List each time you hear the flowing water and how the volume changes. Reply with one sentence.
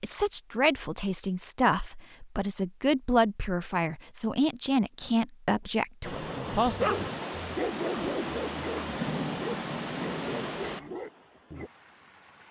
You can hear the flowing water from 6.0 to 12.4 s, getting quieter.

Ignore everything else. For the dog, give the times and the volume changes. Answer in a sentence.
You can hear the dog from 6.0 to 11.7 s, getting quieter.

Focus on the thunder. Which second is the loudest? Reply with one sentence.
The volume of the thunder peaks at 9 seconds.